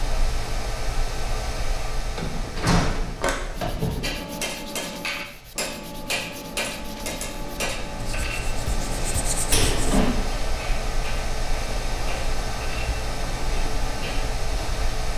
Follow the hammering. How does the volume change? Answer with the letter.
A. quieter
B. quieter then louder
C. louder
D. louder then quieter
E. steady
A.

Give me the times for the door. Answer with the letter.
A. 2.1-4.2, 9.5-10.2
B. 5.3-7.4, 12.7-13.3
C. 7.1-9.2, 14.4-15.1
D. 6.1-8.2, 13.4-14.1
A.